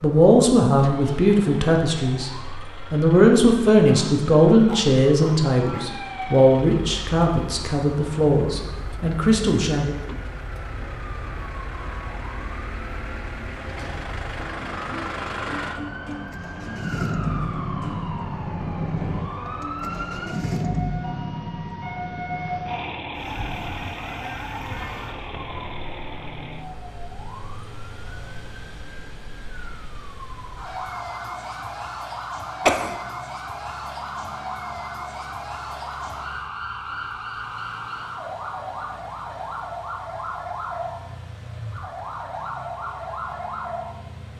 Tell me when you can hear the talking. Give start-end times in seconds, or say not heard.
0.0-2.3, 2.9-10.0.